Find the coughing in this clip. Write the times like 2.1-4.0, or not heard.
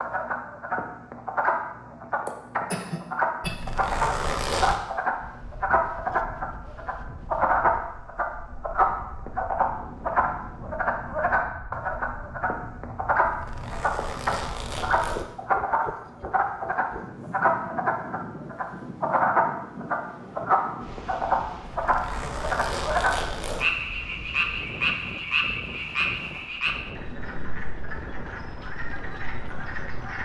2.2-3.7.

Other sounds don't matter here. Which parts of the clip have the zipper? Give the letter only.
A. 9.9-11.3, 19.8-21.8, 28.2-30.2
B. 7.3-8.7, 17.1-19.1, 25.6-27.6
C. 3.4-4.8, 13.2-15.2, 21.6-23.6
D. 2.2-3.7
C.